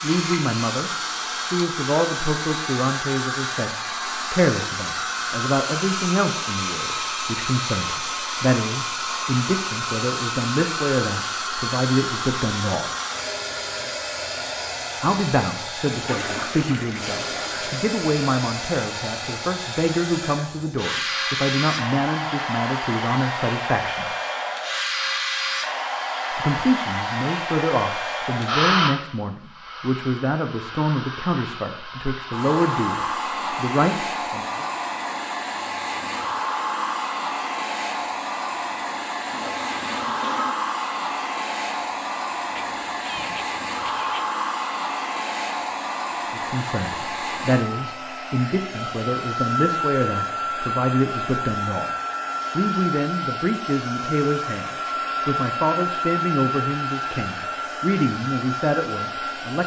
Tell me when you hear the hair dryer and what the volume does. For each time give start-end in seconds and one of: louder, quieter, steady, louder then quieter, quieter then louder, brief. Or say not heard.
0.0-59.6 steady.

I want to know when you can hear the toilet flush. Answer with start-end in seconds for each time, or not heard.
16.1-17.8, 39.2-40.5.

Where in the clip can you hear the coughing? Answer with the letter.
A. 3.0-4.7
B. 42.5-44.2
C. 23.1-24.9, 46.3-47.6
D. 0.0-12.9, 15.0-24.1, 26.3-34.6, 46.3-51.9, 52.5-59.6
B.